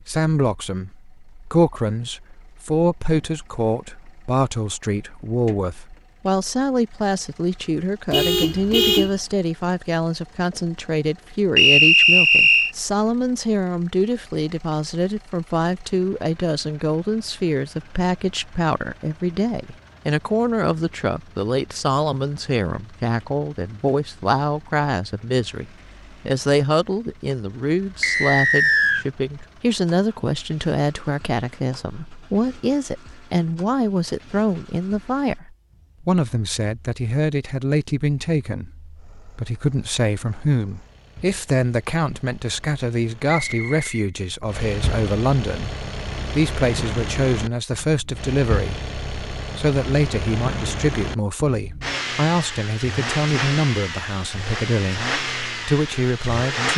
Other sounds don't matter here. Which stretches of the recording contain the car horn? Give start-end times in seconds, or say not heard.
8.1-9.2.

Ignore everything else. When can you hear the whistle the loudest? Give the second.
12 s.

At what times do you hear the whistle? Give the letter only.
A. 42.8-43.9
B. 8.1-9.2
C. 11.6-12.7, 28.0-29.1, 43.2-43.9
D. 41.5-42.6
C.